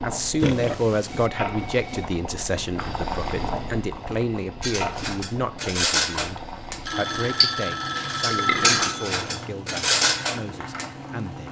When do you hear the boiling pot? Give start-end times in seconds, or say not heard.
0.0-11.4.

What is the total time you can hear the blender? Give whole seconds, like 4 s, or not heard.
not heard.